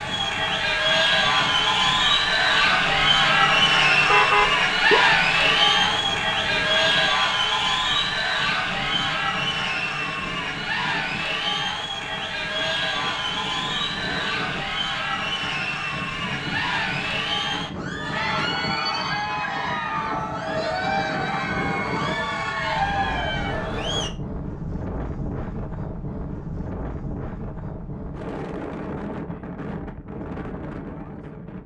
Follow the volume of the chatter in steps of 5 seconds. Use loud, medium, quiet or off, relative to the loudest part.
loud, loud, medium, medium, medium, off, off.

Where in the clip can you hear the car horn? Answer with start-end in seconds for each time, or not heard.
4.0-5.0.